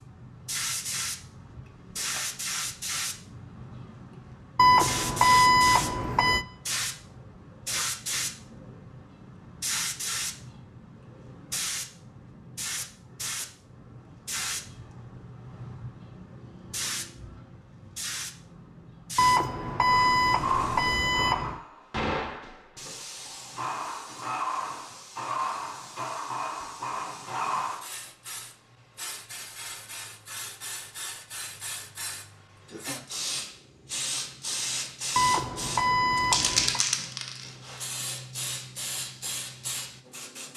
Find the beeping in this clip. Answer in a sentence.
You can hear the beeping from 4.5 to 6.5 s, from 19.1 to 21.6 s and from 35.1 to 36.9 s.